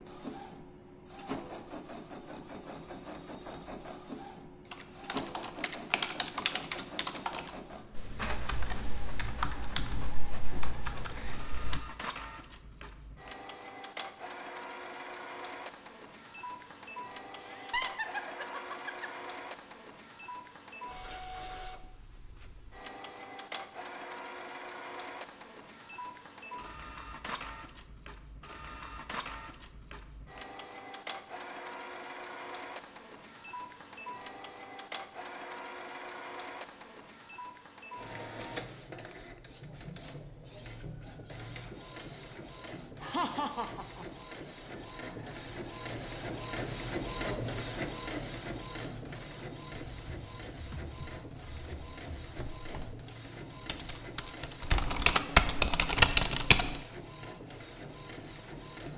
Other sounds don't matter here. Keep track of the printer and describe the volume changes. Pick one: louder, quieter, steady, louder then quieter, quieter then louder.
steady.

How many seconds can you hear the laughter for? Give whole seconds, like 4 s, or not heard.
3 s.